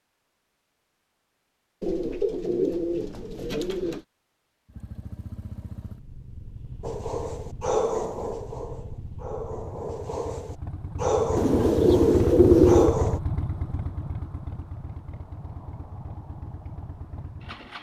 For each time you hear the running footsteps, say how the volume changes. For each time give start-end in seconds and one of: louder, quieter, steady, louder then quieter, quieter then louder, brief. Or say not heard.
not heard.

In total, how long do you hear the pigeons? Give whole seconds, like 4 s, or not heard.
4 s.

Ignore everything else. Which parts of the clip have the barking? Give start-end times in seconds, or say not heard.
6.8-13.2.